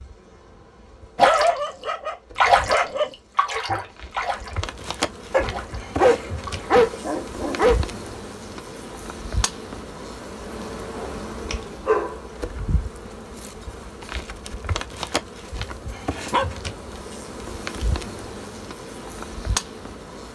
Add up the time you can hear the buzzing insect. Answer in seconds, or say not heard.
20 s.